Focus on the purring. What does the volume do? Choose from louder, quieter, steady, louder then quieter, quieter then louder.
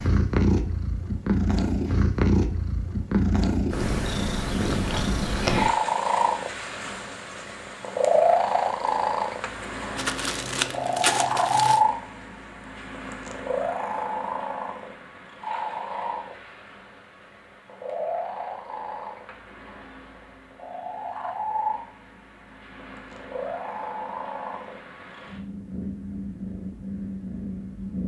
quieter.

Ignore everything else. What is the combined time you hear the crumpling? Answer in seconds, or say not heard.
2 s.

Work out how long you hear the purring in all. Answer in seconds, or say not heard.
28 s.